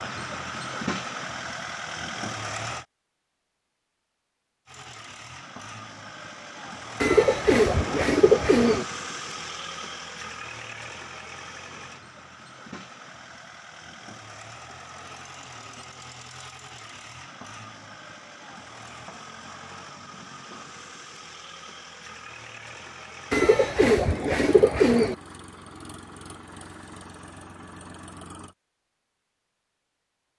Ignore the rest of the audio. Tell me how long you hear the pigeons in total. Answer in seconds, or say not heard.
4 s.